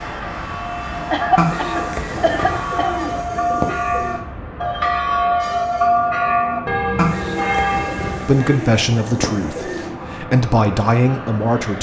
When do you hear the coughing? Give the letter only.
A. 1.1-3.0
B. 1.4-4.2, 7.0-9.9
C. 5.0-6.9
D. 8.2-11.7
A.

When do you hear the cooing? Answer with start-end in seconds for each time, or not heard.
1.4-4.2, 7.0-9.9.